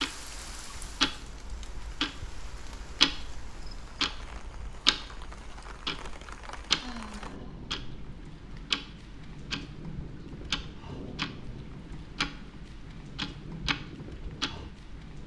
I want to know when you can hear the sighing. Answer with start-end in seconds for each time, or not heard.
6.8-7.8.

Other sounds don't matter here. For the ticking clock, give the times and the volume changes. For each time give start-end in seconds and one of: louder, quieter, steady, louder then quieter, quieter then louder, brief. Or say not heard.
0.0-15.2 quieter.